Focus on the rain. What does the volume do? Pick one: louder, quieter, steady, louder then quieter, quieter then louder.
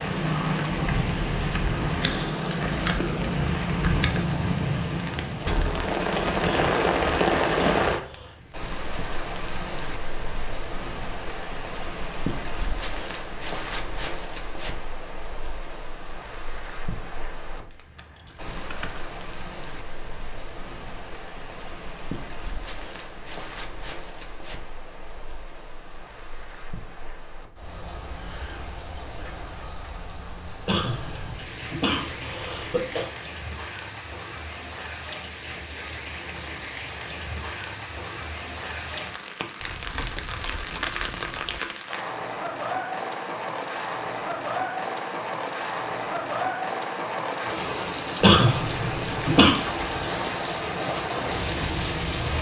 quieter then louder.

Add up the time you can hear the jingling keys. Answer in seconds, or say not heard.
4 s.